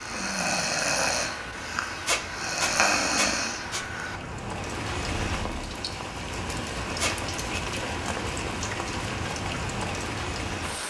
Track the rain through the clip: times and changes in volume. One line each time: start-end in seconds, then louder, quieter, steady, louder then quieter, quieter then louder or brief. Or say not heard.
0.0-10.8 louder.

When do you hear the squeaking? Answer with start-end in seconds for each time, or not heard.
2.0-3.9, 7.0-7.6.